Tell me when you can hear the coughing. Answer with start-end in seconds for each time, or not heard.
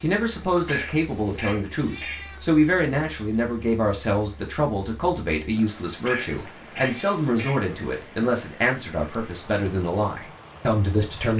0.7-2.2, 6.0-7.7.